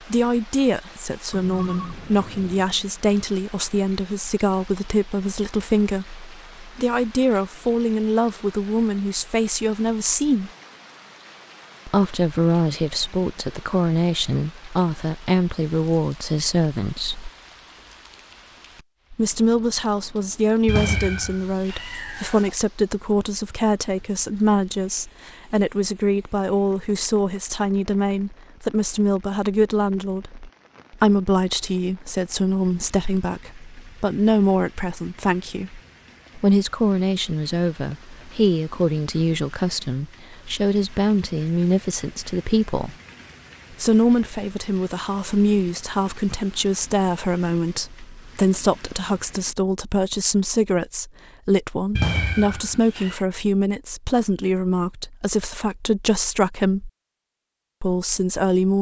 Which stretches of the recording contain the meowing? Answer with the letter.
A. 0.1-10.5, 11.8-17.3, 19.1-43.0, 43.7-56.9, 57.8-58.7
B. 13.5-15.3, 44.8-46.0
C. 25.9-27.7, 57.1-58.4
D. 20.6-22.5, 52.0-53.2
D.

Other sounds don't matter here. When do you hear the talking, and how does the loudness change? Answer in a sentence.
The talking can be heard from 0.1 to 10.5 s, at a steady volume; from 11.8 to 17.3 s, at a steady volume; from 19.1 to 43.0 s, at a steady volume; from 43.7 to 56.9 s, at a steady volume; and briefly from 57.8 to 58.7 s.